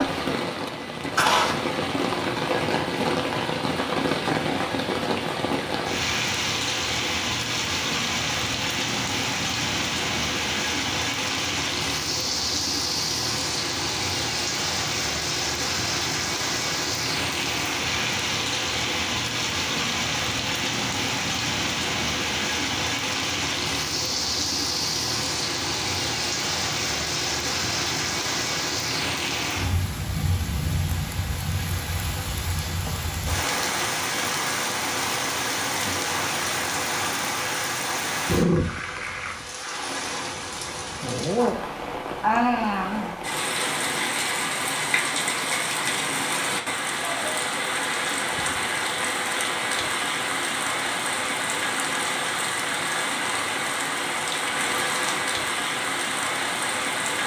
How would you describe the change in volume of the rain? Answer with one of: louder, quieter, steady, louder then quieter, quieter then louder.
steady.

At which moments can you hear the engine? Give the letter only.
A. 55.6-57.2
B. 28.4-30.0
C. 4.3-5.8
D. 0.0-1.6
D.